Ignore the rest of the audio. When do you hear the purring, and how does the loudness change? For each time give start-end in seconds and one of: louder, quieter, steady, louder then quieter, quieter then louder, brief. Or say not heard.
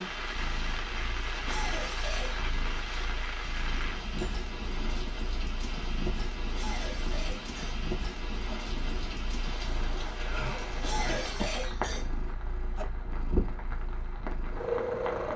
0.1-15.3 louder.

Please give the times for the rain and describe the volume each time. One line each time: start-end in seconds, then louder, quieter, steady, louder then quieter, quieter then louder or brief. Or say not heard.
0.0-15.3 steady.